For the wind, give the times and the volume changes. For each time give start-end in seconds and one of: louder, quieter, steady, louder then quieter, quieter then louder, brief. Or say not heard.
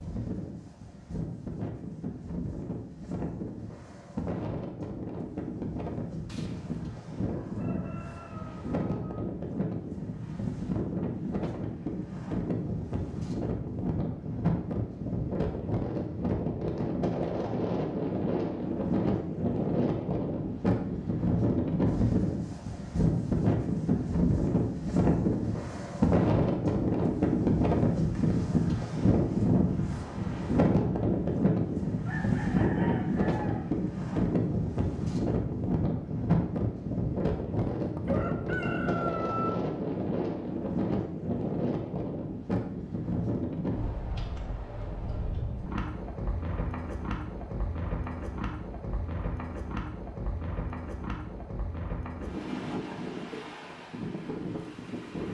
0.0-55.2 louder then quieter.